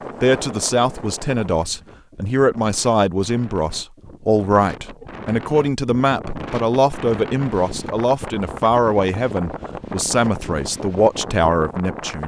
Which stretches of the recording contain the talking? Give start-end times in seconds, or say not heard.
0.2-12.2.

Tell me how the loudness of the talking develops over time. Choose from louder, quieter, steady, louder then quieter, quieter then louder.
steady.